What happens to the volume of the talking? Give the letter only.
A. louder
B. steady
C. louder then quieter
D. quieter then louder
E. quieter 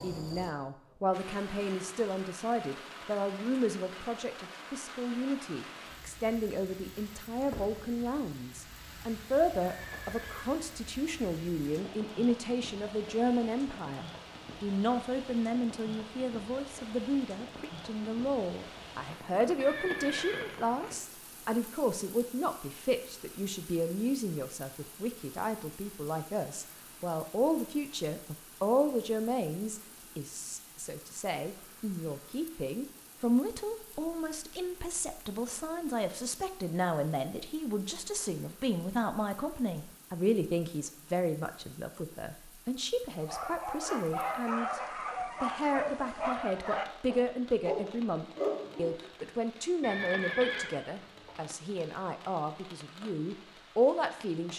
B.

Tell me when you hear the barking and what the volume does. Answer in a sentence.
The barking can be heard from 43.2 to 49.2 s, at a steady volume.